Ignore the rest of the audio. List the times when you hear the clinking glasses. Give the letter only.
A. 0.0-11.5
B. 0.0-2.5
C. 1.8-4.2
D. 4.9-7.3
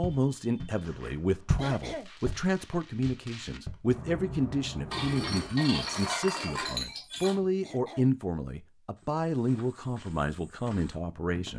D.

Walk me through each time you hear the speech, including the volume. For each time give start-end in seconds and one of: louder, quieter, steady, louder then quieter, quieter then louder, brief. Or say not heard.
0.0-11.5 steady.